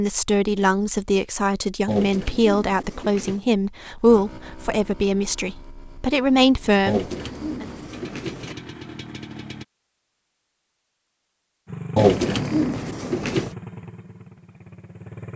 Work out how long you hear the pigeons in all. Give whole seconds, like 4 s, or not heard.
5 s.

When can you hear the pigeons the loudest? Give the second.
12 s.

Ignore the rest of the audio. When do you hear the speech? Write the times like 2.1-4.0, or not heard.
0.0-7.7.